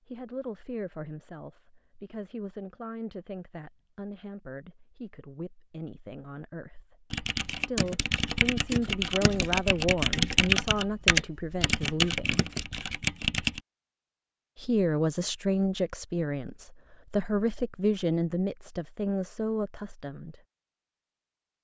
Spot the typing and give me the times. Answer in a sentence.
The typing can be heard from 7.1 to 13.6 s.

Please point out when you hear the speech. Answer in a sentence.
The speech can be heard from 0.1 to 12.4 s and from 14.6 to 20.4 s.